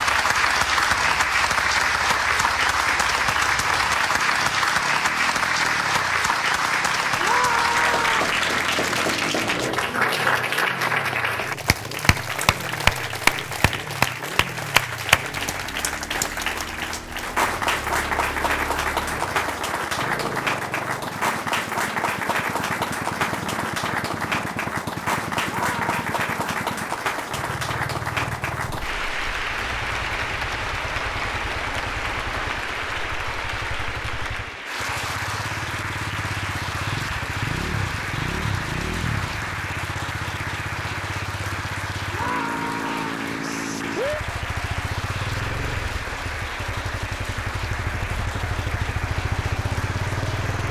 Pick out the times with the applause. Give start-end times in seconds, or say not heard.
0.0-50.6.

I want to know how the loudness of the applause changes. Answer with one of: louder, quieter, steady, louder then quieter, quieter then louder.
quieter.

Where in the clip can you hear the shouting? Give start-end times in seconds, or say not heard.
7.2-8.2, 25.4-25.9, 42.1-43.2.